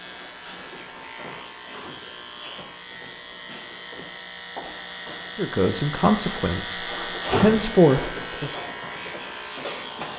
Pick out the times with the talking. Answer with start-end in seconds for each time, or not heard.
5.3-8.5.